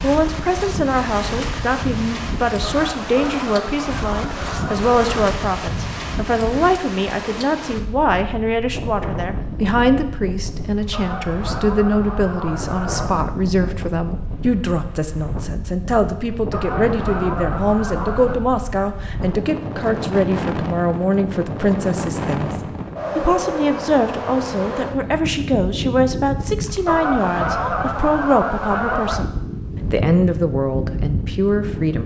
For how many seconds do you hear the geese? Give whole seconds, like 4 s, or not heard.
9 s.